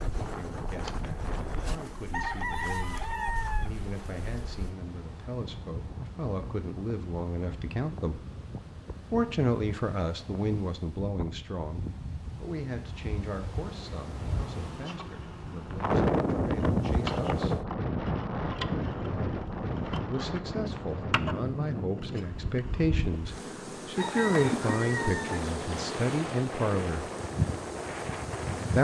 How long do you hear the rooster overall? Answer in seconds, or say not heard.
3 s.